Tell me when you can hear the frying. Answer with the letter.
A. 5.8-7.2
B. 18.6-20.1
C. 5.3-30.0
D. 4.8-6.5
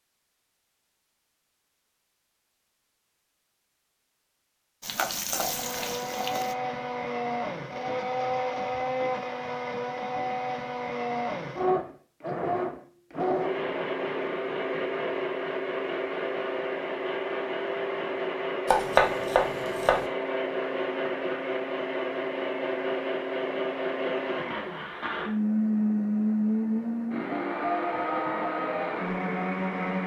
D.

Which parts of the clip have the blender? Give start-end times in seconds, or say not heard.
5.3-30.0.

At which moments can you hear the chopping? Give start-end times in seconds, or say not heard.
18.6-20.1.